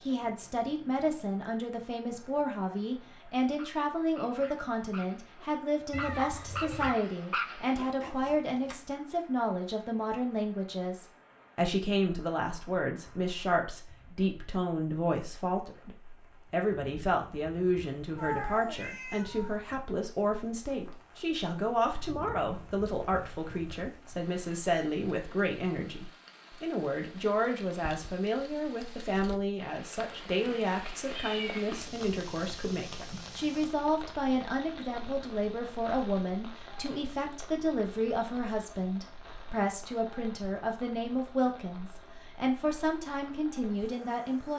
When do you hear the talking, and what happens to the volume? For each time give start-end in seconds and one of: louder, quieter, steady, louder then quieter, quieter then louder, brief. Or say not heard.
0.1-44.5 steady.